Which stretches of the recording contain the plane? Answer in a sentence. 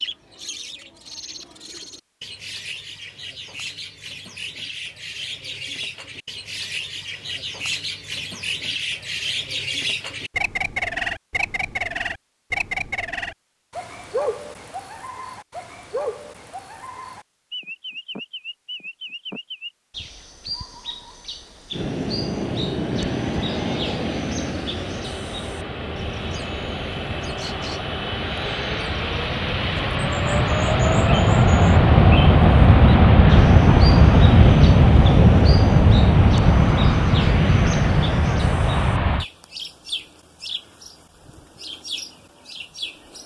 The plane can be heard from 21.8 to 39.2 s.